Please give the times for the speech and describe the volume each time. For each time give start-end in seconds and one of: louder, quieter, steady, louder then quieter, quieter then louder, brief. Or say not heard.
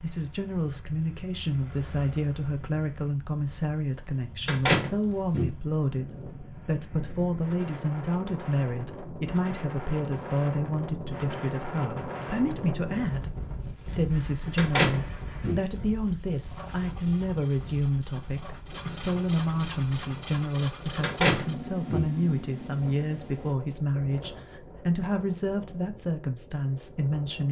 0.0-27.4 steady.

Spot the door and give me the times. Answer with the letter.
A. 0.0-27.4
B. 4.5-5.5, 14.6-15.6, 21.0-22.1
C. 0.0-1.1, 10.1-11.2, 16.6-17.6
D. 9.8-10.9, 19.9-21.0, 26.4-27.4
B.